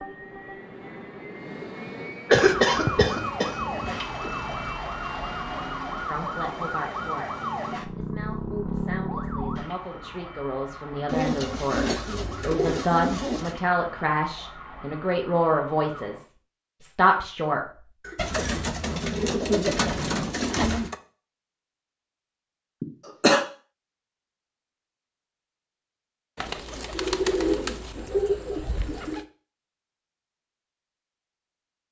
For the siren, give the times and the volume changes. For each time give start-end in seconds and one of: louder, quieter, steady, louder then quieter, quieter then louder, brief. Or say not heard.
2.4-16.2 quieter.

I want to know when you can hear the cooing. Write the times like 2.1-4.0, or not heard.
2.3-4.0, 11.1-13.6, 18.1-20.9, 26.4-29.2.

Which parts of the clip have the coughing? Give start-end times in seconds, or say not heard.
2.2-3.5, 18.0-18.6, 22.8-23.4.